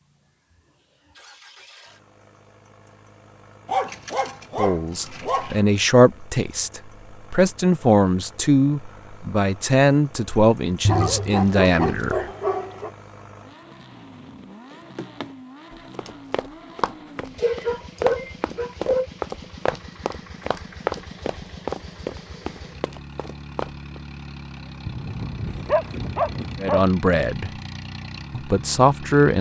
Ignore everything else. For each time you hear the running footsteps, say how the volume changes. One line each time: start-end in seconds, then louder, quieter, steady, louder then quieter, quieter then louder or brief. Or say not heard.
14.7-24.0 louder then quieter.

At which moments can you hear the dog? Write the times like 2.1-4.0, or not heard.
3.6-5.6, 10.8-12.9, 17.4-19.1, 24.9-26.9.